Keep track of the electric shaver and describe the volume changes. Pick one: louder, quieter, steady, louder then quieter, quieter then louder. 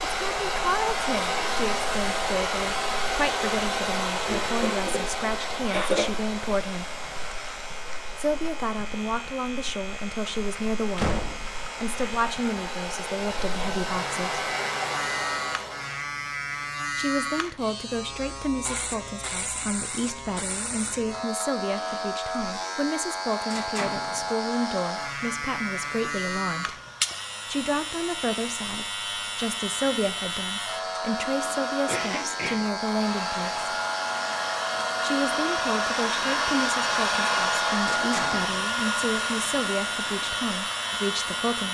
louder.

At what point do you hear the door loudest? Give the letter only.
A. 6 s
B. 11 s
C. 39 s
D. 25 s
B.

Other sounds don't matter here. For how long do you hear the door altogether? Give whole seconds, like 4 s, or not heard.
2 s.